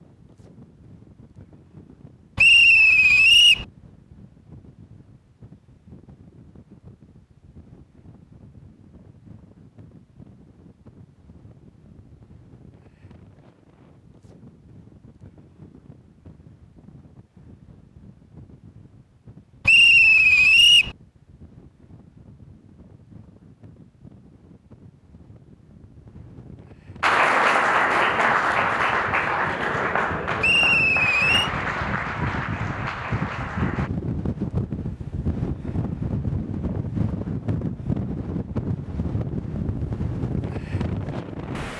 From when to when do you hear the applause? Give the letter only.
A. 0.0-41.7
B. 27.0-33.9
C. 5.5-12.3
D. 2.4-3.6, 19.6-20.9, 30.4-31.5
B.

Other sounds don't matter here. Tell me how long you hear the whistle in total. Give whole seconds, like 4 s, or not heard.
4 s.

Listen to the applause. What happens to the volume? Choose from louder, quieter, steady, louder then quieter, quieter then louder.
quieter.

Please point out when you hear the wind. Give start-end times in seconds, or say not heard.
0.0-41.7.